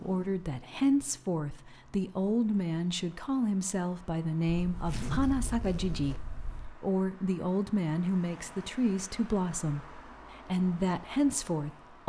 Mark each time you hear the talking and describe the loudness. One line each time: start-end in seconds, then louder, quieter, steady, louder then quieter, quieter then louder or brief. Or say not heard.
0.0-12.0 steady.